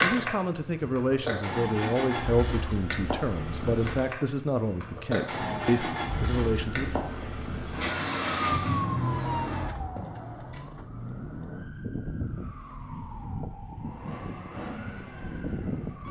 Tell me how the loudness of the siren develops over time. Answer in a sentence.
The loudness of the siren goes up, then down.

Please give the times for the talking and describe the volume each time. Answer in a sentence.
The talking can be heard from 0.0 to 6.9 s, at a steady volume.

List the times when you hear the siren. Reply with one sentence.
You can hear the siren from 5.3 to 16.0 s.